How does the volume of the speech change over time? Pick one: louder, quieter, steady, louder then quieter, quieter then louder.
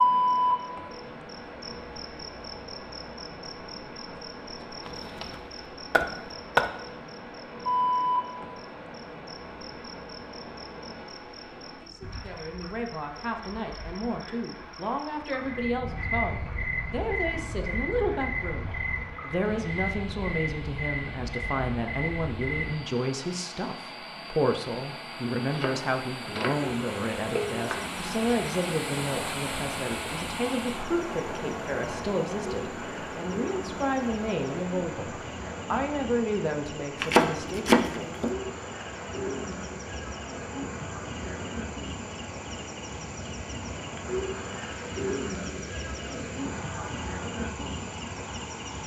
steady.